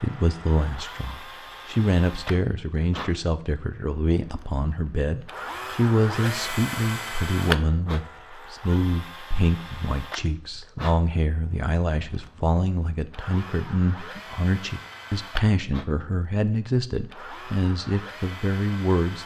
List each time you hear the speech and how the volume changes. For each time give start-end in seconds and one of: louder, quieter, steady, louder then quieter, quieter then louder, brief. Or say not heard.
0.0-19.2 steady.